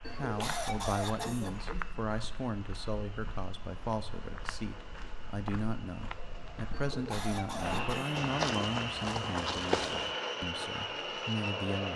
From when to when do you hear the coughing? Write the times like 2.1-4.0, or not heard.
0.0-1.9, 6.7-8.2.